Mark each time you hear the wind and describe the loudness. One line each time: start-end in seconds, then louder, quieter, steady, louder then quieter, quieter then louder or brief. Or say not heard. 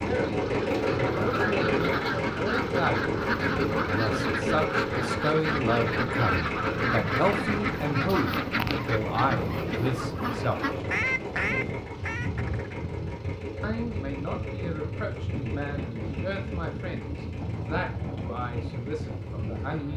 0.0-19.9 steady.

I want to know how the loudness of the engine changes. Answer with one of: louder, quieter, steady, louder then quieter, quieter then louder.
quieter.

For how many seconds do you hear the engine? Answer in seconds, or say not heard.
20 s.